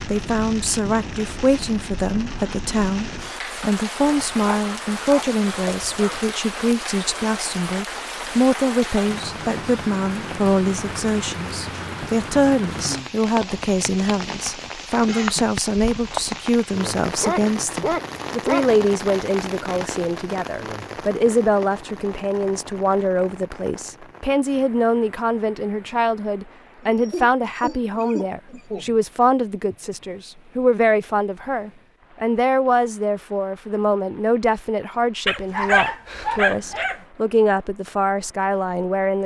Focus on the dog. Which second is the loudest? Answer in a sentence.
The volume of the dog peaks at 36 seconds.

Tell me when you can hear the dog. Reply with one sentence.
The dog can be heard from 4.0 to 6.2 s, from 17.2 to 18.7 s and from 35.2 to 37.0 s.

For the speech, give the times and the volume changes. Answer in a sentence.
The speech can be heard from 0.1 to 39.2 s, at a steady volume.